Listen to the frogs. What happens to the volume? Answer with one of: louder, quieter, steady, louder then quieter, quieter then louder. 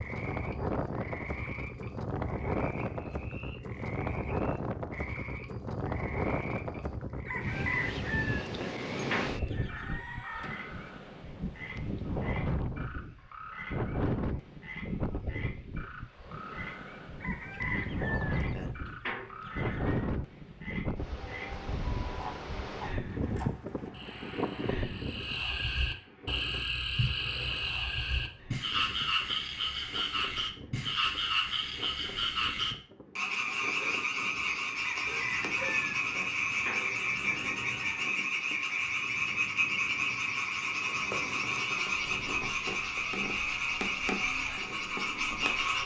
louder.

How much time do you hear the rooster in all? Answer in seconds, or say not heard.
10 s.